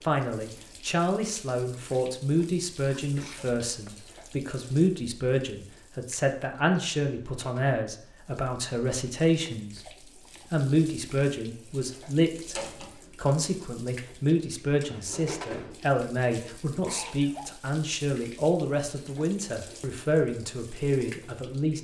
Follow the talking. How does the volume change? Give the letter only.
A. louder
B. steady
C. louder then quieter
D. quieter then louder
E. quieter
B.